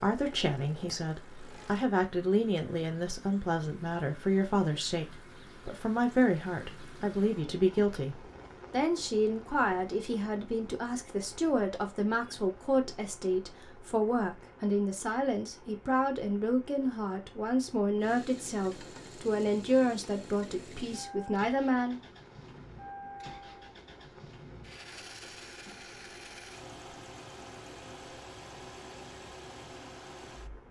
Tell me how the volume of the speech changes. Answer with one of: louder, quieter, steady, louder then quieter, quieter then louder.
steady.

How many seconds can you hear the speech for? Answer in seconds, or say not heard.
22 s.